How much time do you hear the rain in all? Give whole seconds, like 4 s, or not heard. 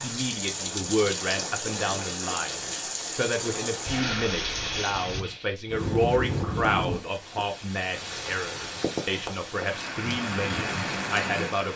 12 s.